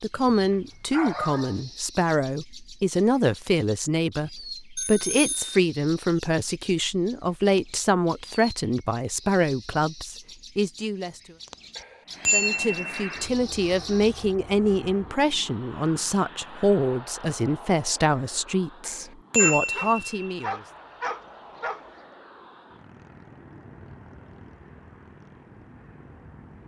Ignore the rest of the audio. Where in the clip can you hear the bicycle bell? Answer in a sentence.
You can hear the bicycle bell from 4.8 to 5.6 s, from 11.8 to 13.1 s and from 18.9 to 20.4 s.